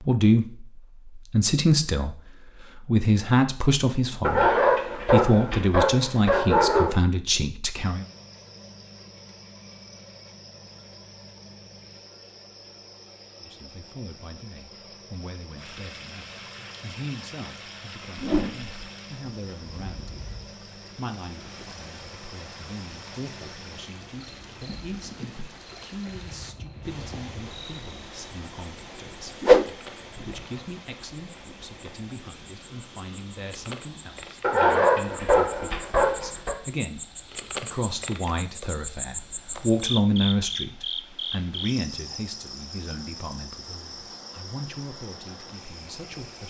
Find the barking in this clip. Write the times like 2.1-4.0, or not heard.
4.2-7.0, 34.4-36.5.